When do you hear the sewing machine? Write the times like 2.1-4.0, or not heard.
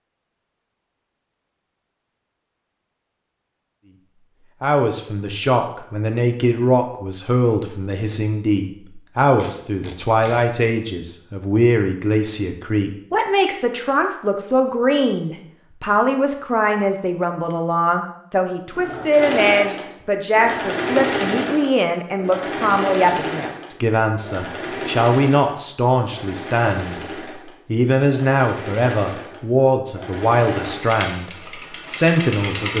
18.8-32.7.